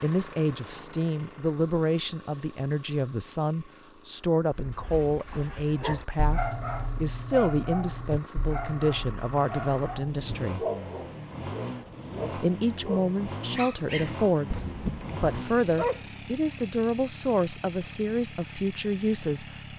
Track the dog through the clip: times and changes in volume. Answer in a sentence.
You can hear the dog from 4.5 to 16.1 s, at a steady volume.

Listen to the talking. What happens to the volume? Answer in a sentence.
The volume of the talking stays about the same.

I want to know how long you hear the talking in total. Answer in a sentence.
You can hear the talking for 18 seconds altogether.